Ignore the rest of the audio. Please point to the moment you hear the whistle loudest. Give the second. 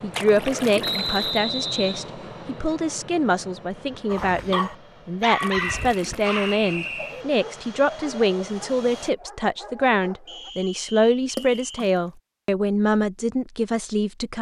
1 s.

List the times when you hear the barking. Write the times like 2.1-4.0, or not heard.
4.0-10.6.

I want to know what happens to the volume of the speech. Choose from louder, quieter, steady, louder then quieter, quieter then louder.
steady.